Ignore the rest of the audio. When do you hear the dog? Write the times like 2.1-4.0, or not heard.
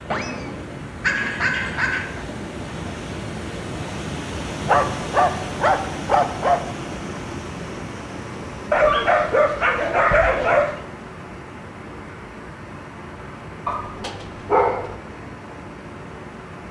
0.1-2.2, 4.7-6.6, 8.7-10.8, 13.7-14.9.